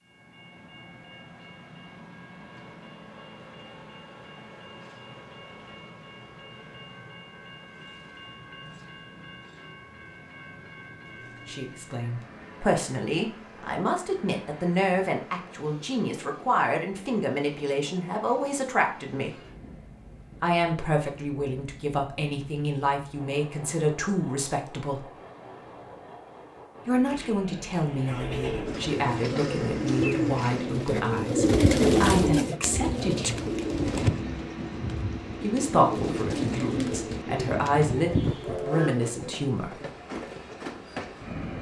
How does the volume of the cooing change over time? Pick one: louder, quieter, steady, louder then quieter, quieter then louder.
louder then quieter.